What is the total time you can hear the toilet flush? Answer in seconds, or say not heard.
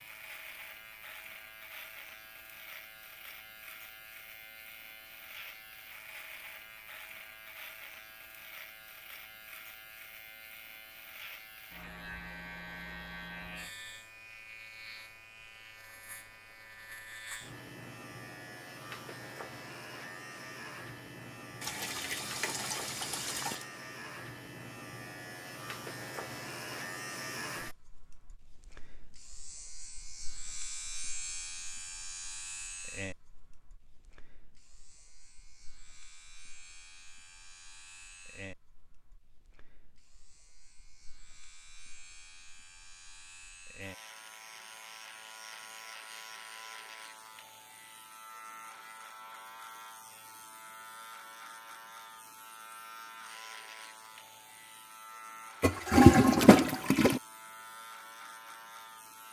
4 s.